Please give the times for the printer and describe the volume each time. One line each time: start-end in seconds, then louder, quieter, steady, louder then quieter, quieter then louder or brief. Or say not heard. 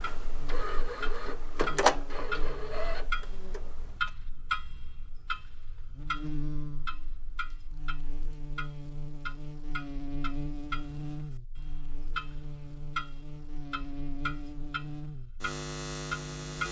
0.0-4.1 louder then quieter.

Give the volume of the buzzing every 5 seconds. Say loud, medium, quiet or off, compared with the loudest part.
quiet, medium, loud, loud.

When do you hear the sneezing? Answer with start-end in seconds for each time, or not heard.
not heard.